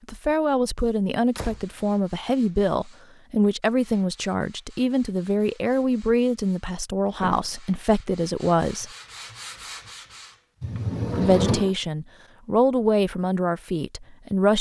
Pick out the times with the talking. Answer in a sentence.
You can hear the talking from 0.1 to 8.9 s and from 11.2 to 14.5 s.